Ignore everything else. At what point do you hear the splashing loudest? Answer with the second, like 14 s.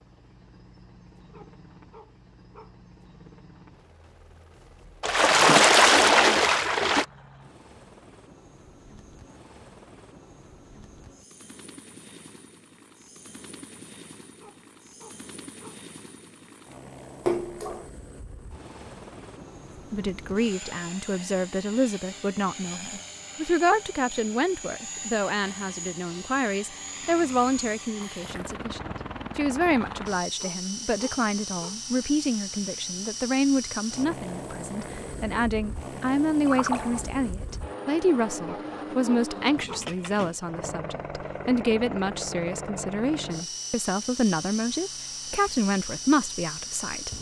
6 s.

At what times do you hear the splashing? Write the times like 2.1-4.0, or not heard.
5.0-7.0, 17.2-17.9, 28.2-28.6, 36.4-37.5.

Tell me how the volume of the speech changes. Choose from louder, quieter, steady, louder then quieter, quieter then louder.
steady.